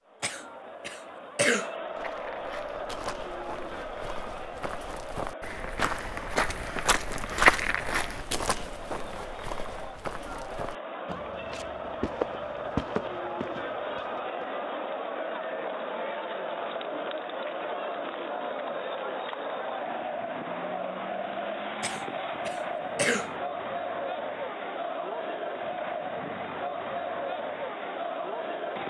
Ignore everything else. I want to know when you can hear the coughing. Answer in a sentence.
You can hear the coughing from 0.2 to 1.7 s and from 21.8 to 23.3 s.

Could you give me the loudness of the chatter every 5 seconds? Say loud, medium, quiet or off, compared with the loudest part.
medium, medium, loud, loud, loud, loud.